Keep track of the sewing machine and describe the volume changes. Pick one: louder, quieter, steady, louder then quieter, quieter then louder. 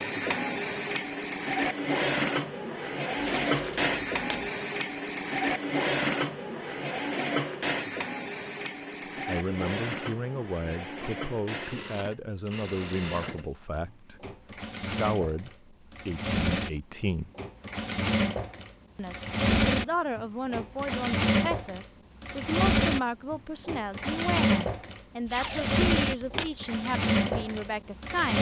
quieter then louder.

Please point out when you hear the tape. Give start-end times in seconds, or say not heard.
3.1-4.5, 25.2-26.6.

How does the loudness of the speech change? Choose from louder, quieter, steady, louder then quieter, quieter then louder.
steady.